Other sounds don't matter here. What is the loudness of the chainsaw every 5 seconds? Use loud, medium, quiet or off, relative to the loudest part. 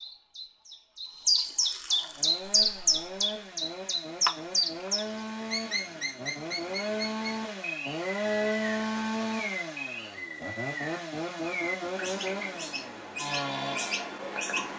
medium, loud, loud.